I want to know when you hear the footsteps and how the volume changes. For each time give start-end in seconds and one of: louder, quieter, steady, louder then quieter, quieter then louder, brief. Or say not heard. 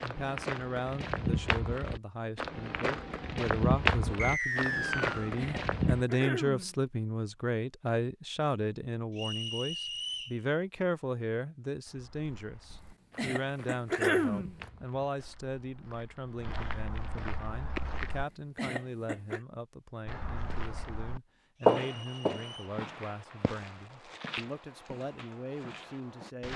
0.0-6.0 louder then quieter
11.8-18.2 louder
20.1-26.5 louder then quieter.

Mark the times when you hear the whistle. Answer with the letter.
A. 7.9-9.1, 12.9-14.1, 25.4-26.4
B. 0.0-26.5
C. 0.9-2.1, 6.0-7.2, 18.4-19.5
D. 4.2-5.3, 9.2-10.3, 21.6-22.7
D.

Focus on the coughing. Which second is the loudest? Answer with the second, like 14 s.
14 s.